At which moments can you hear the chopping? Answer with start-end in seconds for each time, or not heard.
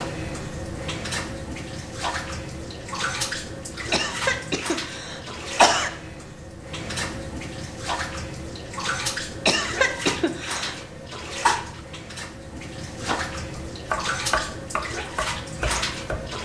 13.0-16.4.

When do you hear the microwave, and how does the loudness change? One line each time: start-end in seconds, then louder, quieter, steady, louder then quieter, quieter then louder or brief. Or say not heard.
not heard.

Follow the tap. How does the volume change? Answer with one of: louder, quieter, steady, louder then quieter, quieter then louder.
steady.